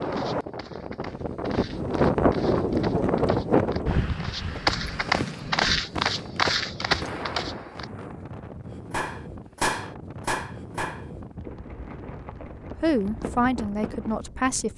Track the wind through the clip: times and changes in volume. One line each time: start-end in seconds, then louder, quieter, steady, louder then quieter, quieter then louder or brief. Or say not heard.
0.0-14.7 quieter.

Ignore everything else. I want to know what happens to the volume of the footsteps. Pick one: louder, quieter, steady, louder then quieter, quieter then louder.
louder.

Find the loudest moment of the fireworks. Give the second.
10 s.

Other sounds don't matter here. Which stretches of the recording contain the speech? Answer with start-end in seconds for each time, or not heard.
12.8-14.7.